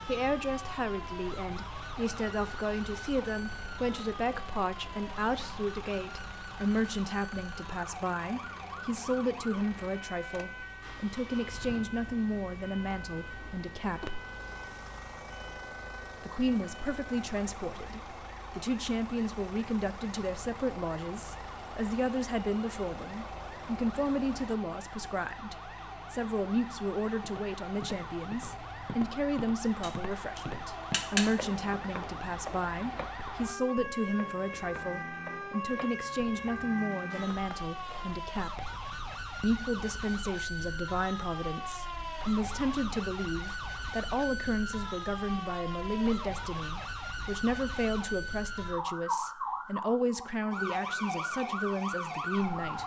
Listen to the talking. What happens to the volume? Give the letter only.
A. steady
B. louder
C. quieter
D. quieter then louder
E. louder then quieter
A.